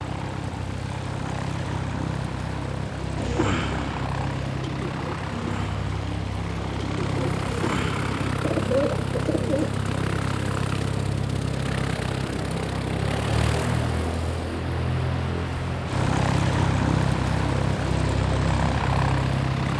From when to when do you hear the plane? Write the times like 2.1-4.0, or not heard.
0.0-19.7.